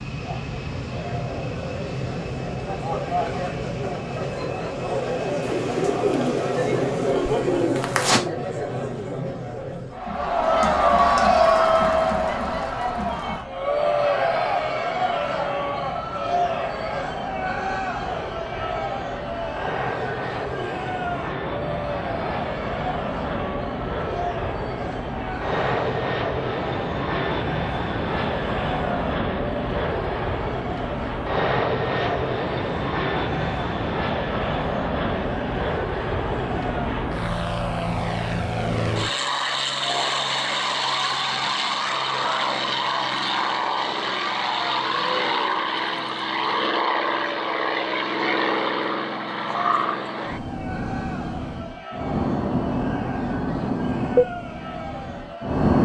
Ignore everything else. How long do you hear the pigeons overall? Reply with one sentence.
You can hear the pigeons for 3 seconds altogether.